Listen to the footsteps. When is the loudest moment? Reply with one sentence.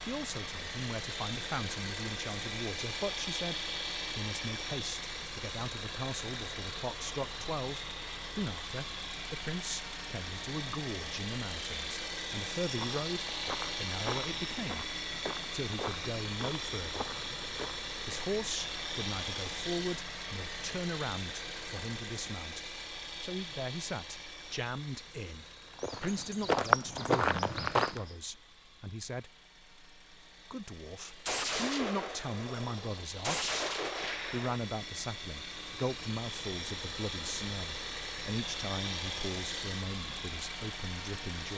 The loudest moment of the footsteps is at 27 seconds.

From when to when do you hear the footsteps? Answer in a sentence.
The footsteps can be heard from 12.8 to 18.2 s and from 25.8 to 28.0 s.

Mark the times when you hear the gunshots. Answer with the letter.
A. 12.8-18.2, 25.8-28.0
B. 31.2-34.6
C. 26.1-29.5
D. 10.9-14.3
B.